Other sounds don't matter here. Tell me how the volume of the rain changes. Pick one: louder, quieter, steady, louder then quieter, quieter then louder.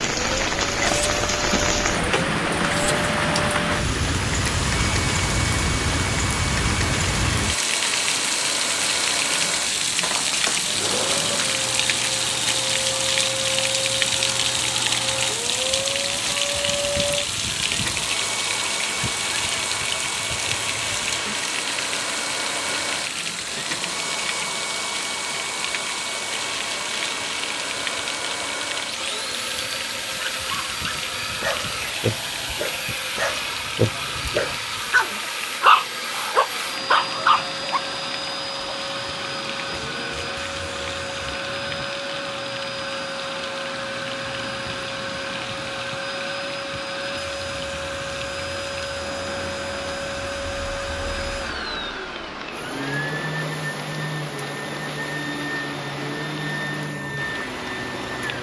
quieter.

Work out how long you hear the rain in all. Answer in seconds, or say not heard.
58 s.